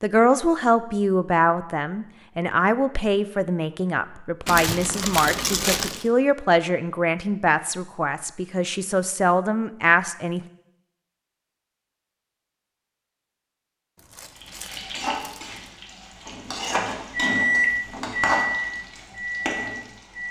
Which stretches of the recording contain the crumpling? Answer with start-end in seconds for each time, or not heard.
4.5-6.0, 13.9-15.8.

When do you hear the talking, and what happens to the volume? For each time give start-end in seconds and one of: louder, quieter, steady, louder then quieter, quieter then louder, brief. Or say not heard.
0.0-10.4 steady.